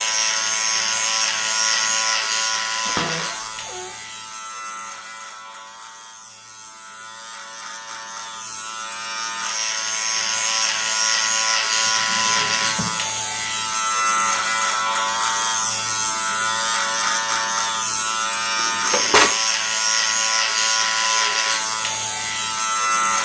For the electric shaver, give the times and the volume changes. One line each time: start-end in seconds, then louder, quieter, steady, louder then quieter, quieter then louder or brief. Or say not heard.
0.0-23.2 quieter then louder.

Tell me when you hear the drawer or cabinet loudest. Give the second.
19 s.